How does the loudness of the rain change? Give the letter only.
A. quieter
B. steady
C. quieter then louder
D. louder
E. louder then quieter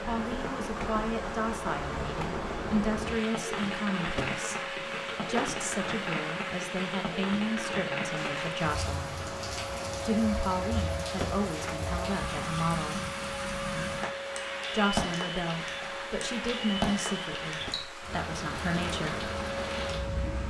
B.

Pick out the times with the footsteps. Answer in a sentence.
The footsteps can't be heard in this clip.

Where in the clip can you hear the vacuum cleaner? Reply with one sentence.
The vacuum cleaner can be heard from 0.0 to 20.4 s.